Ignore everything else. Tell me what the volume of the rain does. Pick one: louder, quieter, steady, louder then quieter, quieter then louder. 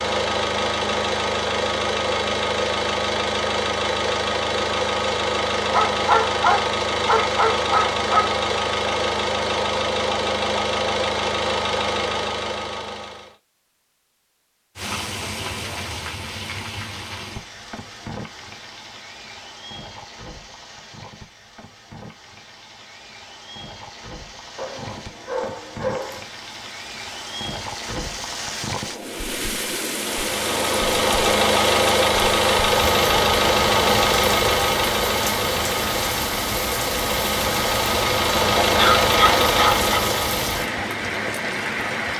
quieter then louder.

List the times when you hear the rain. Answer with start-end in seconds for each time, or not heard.
14.8-42.1.